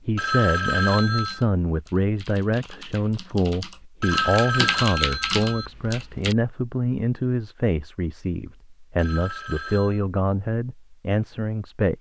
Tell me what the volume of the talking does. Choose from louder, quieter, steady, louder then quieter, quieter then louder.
steady.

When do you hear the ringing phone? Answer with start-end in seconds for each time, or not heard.
0.1-1.4, 4.0-5.7, 8.9-10.0.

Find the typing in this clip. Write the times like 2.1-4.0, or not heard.
0.8-6.3.